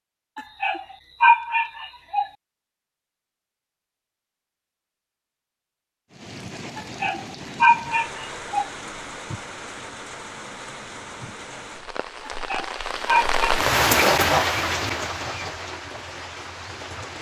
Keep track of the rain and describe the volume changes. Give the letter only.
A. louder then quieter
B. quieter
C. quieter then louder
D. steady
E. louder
A.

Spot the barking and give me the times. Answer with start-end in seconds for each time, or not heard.
0.3-2.2, 6.8-8.7, 12.2-13.4.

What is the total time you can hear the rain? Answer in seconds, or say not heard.
11 s.